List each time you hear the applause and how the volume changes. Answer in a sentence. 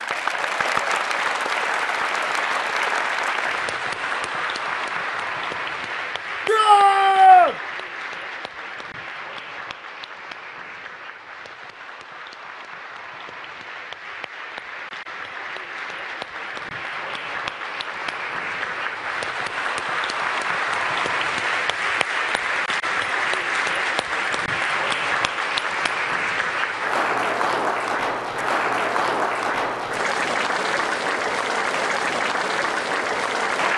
You can hear the applause from 0.0 to 33.7 s, getting quieter then louder.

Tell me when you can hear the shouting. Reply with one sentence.
The shouting can be heard from 6.5 to 7.5 s.